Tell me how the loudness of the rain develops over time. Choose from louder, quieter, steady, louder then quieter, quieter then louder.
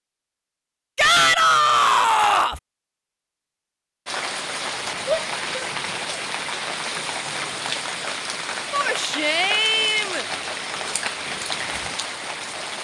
steady.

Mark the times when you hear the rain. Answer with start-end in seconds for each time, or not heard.
4.0-12.7.